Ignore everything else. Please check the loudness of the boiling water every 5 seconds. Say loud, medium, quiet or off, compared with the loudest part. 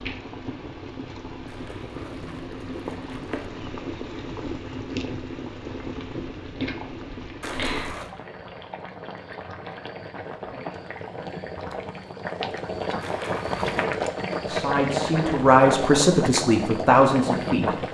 medium, medium, loud, loud.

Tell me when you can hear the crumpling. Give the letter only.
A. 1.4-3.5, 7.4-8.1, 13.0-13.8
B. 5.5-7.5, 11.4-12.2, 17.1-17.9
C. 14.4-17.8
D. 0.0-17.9
A.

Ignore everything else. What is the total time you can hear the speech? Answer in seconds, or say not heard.
3 s.